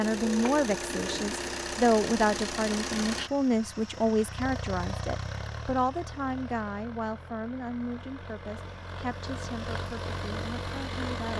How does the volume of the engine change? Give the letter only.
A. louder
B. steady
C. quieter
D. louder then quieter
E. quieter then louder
E.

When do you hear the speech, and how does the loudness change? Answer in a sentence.
The speech can be heard from 0.0 to 11.3 s, getting quieter.